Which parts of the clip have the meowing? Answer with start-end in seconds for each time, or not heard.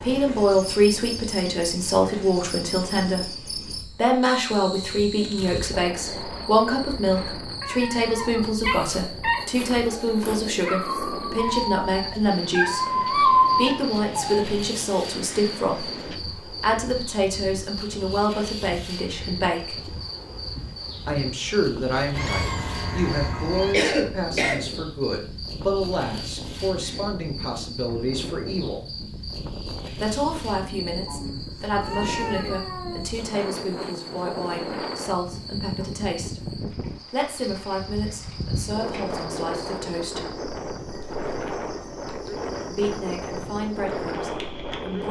7.0-8.7, 22.1-23.8, 31.1-33.0.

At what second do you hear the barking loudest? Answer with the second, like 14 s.
13 s.